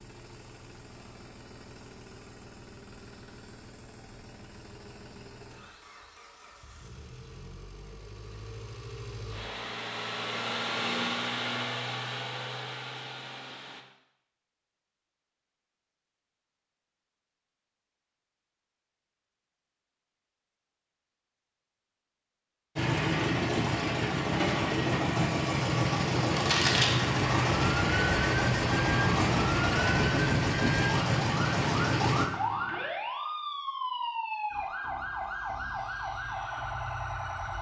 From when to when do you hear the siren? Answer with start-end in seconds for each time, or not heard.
26.2-37.5.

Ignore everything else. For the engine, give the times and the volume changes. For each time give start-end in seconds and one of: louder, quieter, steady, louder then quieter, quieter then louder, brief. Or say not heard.
0.0-13.8 louder
22.8-32.2 steady.